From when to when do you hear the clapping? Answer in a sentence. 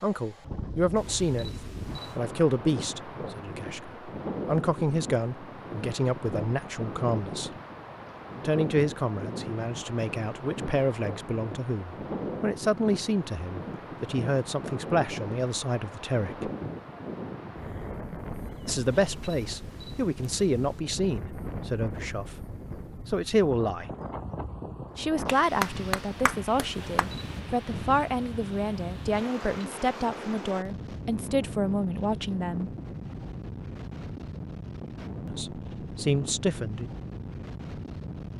You can hear the clapping from 25.2 to 27.1 s.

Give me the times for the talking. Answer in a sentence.
You can hear the talking from 0.0 to 7.5 s, from 8.4 to 16.5 s, from 18.6 to 23.9 s, from 24.9 to 32.7 s and from 35.2 to 36.9 s.